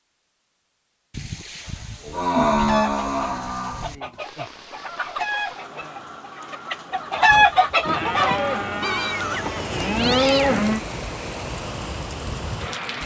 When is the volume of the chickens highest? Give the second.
7 s.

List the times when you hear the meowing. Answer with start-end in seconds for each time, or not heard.
8.8-10.7.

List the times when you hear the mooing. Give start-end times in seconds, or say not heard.
1.1-4.0, 7.8-10.8.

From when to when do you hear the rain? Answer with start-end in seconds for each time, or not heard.
4.2-13.0.